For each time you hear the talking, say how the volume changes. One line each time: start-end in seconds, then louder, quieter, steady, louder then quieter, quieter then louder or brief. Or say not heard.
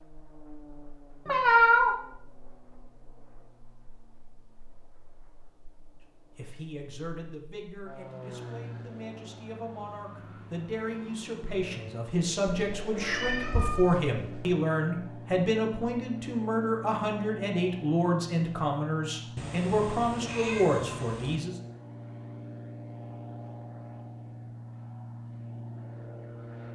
6.3-21.6 louder.